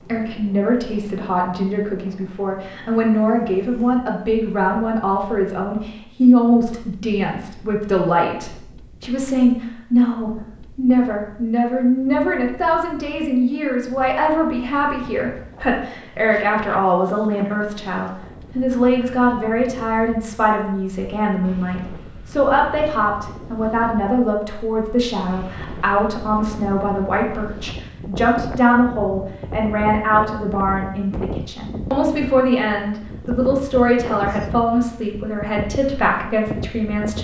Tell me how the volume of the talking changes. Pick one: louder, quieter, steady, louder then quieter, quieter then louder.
steady.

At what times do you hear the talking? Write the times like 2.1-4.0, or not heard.
0.0-37.1.